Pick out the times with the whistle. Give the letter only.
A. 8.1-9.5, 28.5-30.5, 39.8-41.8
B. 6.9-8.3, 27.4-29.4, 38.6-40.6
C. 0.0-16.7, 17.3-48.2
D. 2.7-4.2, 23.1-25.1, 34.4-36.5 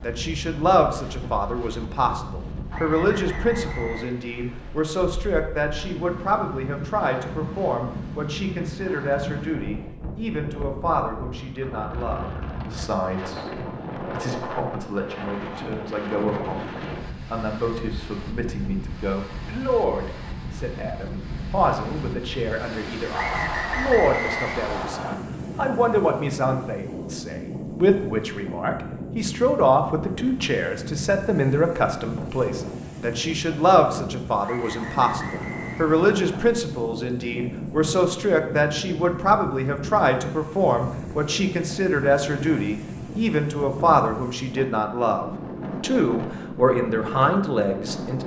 D.